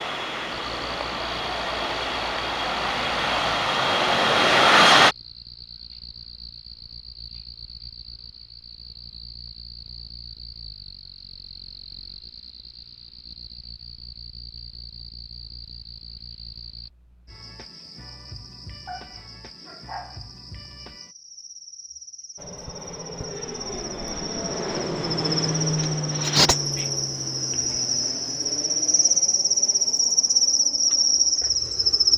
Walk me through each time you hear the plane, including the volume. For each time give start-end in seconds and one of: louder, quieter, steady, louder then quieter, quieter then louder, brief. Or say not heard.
0.0-5.2 louder
22.4-32.1 louder then quieter.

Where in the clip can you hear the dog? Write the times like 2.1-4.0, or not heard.
18.9-20.3.